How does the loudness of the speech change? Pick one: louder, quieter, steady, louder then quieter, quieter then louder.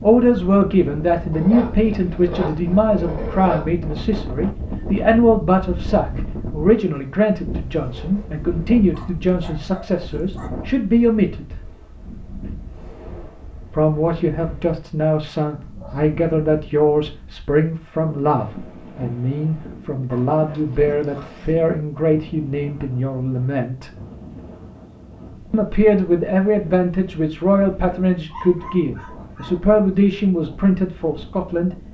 steady.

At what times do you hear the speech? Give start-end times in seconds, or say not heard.
0.0-11.6, 13.7-23.9, 25.5-31.8.